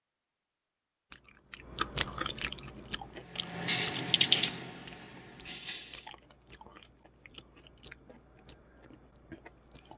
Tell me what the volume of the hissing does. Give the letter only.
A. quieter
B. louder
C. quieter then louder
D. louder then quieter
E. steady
D.